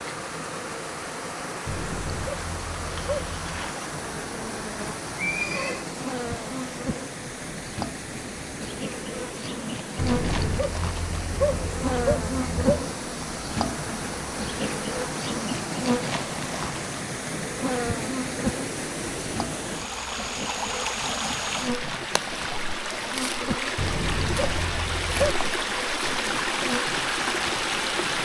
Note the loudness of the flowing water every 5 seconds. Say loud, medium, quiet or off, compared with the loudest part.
medium, medium, medium, medium, loud, loud.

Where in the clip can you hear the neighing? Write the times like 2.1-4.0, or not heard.
5.2-5.8.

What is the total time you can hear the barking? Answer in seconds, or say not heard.
7 s.